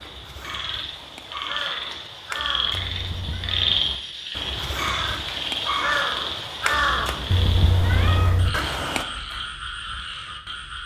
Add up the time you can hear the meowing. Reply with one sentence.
The meowing can be heard for 2 seconds in total.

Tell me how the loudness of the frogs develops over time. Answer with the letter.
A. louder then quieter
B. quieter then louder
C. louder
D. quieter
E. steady
A.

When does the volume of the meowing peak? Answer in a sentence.
The volume of the meowing peaks at 8 seconds.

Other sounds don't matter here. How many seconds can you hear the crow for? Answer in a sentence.
The crow can be heard for 9 seconds in total.